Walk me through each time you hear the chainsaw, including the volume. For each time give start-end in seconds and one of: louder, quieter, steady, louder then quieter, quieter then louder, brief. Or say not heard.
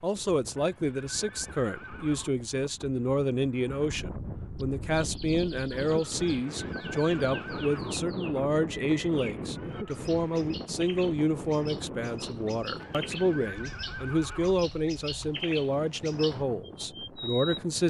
not heard.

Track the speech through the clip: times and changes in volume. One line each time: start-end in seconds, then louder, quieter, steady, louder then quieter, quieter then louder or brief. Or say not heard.
0.0-17.8 steady.